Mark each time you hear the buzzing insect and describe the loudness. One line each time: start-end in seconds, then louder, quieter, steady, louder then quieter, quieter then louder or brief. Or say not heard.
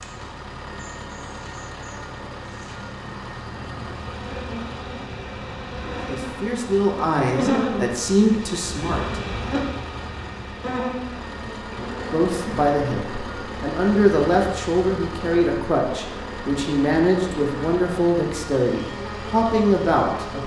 0.0-20.4 louder then quieter.